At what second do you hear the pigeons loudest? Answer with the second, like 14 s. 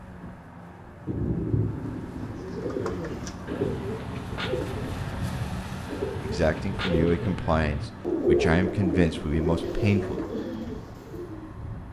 8 s.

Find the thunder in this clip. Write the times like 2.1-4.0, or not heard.
1.1-3.9.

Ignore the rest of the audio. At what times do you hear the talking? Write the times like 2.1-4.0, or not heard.
6.2-10.2.